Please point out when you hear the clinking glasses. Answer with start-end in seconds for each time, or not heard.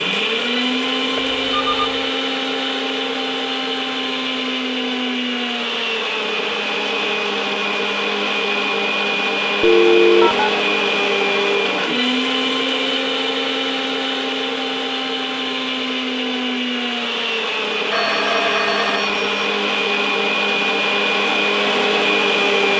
not heard.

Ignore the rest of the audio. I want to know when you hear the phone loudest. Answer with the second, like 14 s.
10 s.